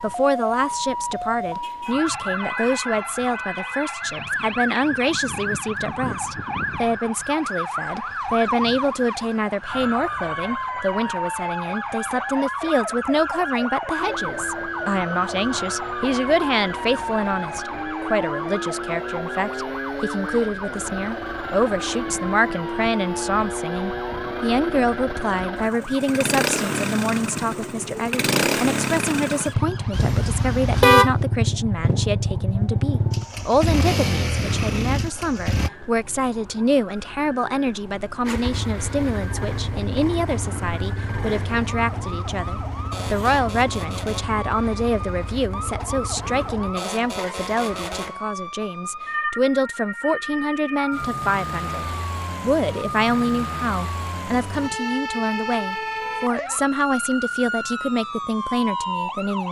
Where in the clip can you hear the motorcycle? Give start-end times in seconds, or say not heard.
13.9-35.7, 38.2-48.1.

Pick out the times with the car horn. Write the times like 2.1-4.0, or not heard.
29.9-31.2.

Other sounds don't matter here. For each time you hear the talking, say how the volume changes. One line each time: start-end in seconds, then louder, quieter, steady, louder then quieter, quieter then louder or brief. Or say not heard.
0.0-59.4 steady.